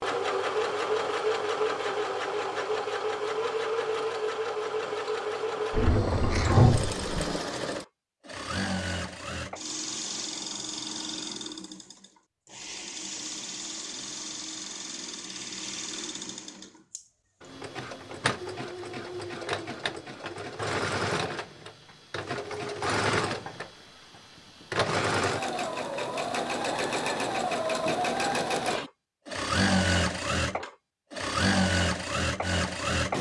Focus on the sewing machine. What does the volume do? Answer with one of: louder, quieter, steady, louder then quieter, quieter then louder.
quieter then louder.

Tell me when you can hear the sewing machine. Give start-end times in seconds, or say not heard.
0.0-33.1.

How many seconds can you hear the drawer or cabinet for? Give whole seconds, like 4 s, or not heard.
2 s.